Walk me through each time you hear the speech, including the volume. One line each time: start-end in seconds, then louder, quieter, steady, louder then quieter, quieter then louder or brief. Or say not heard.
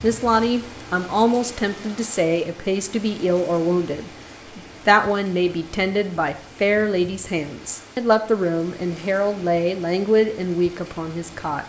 0.0-11.6 steady.